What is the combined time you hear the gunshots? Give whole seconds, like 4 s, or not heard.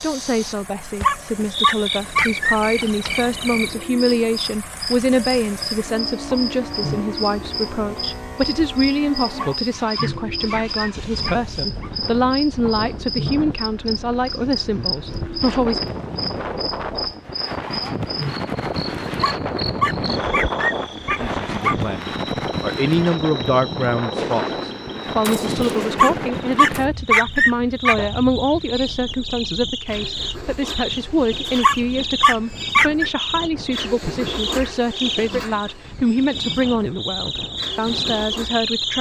3 s.